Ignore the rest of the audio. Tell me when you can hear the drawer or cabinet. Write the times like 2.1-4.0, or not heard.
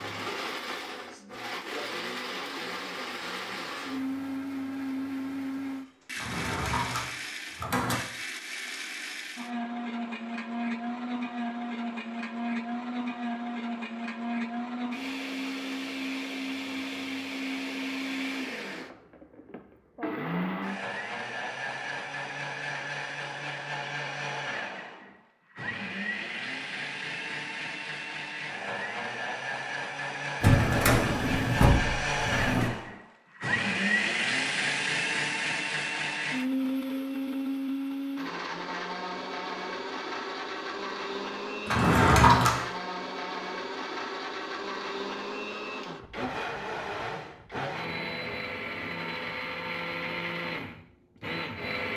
6.2-8.0, 30.4-32.7, 41.6-42.5.